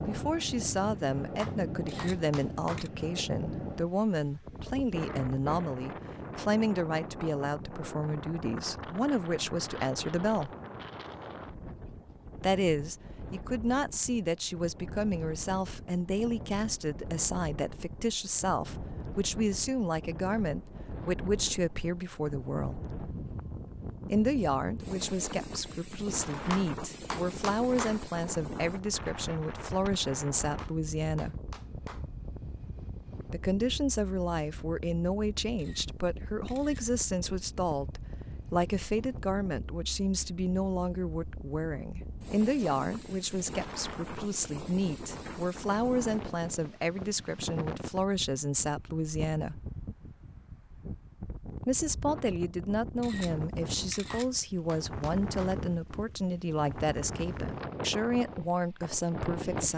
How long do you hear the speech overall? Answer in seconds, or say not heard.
53 s.